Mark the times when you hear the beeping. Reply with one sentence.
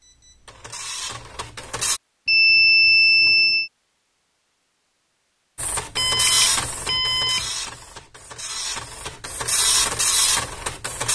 You can hear the beeping from 2.2 to 3.7 s and from 6.0 to 7.5 s.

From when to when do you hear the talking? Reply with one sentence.
The talking can't be heard in this clip.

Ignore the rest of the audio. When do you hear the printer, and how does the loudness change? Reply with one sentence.
You can hear the printer briefly from 0.0 to 2.0 s; and from 5.5 to 11.1 s, getting quieter then louder.